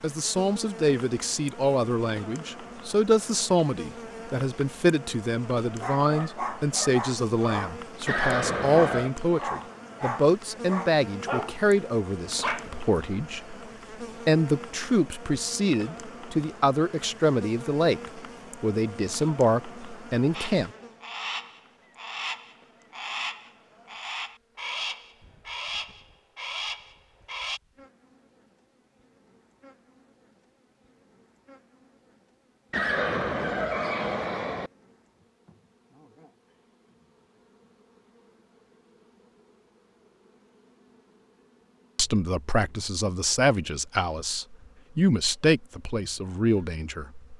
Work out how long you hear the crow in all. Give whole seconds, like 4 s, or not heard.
7 s.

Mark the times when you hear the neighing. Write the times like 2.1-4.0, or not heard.
8.1-9.1, 32.7-34.7.